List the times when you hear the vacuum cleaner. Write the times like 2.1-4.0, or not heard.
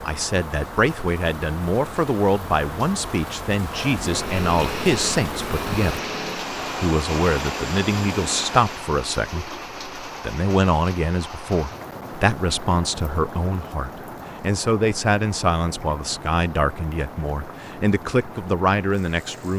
3.7-8.8.